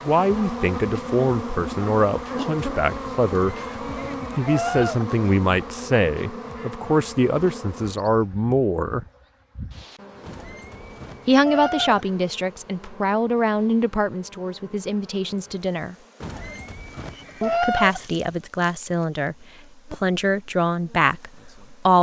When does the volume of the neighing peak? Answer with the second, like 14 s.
18 s.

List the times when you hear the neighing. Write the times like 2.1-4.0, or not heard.
3.2-5.1, 10.2-12.1, 16.2-18.1.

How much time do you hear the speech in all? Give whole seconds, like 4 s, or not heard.
18 s.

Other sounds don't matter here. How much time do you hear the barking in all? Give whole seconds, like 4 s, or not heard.
not heard.